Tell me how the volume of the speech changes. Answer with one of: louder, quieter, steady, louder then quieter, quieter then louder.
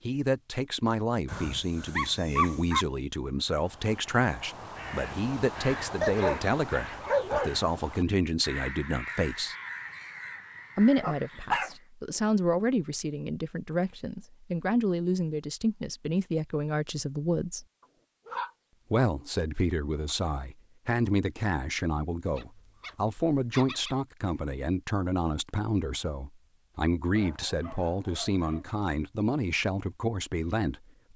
steady.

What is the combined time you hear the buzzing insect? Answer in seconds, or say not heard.
not heard.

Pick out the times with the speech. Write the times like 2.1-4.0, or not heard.
0.1-9.6, 10.8-17.6, 18.9-31.1.